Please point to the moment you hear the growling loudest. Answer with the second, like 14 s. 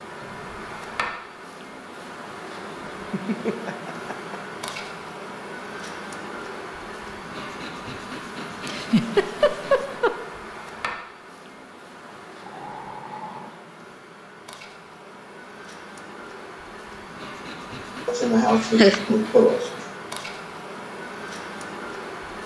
13 s.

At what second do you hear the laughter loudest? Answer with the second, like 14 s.
19 s.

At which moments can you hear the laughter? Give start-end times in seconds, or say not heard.
3.1-4.4, 8.7-10.2, 18.1-19.6.